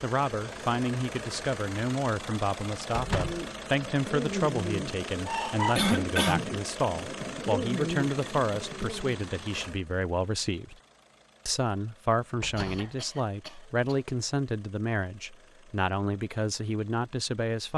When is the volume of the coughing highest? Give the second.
6 s.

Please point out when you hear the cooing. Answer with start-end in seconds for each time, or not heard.
3.1-9.2.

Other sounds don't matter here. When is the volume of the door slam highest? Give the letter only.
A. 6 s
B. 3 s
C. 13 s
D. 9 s
B.